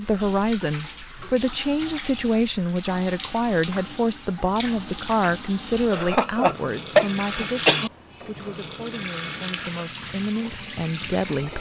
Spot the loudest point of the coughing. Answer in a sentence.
The volume of the coughing peaks at 7 seconds.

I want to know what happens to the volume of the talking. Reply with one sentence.
The volume of the talking goes down.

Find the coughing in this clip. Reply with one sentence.
You can hear the coughing from 5.9 to 7.9 s.